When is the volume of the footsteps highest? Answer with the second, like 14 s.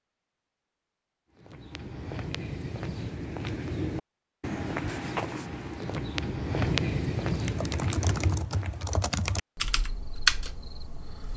7 s.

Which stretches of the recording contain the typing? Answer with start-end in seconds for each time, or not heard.
7.3-11.3.